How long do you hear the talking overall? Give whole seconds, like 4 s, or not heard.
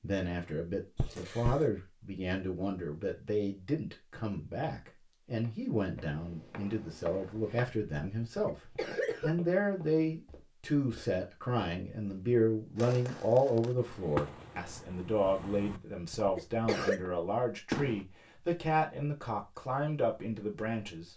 21 s.